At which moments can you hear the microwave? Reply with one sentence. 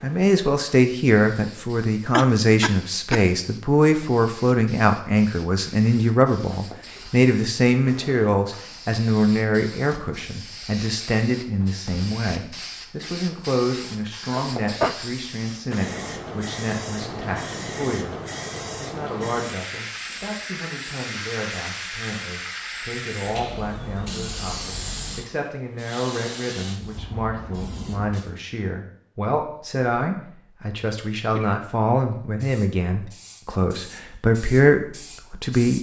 The microwave can't be heard in this clip.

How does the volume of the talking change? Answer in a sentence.
The volume of the talking goes down, then up.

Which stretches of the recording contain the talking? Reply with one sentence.
You can hear the talking from 0.0 to 35.7 s.